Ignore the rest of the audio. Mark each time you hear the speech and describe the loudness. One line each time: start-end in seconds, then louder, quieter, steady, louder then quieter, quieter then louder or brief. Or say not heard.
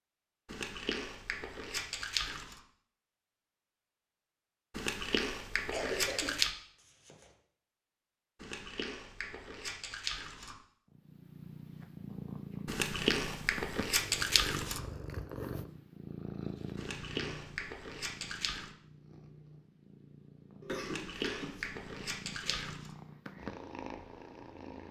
not heard.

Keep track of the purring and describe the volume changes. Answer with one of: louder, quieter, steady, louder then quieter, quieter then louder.
quieter then louder.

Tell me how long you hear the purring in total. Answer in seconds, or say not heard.
14 s.